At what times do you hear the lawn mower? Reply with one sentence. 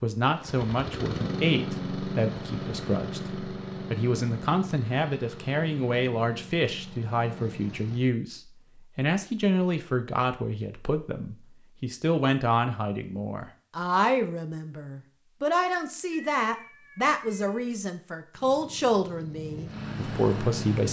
You can hear the lawn mower from 0.2 to 8.1 s and from 18.4 to 20.8 s.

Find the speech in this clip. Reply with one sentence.
You can hear the speech from 0.0 to 20.8 s.